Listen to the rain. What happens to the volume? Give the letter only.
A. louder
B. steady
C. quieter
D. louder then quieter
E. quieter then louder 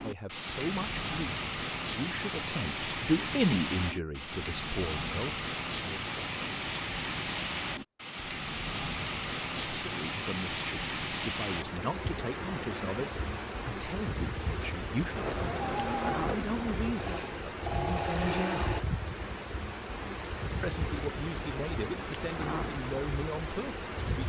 B.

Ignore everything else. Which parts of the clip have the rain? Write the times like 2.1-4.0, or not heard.
0.0-24.2.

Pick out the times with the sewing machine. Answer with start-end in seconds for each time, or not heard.
15.2-18.9.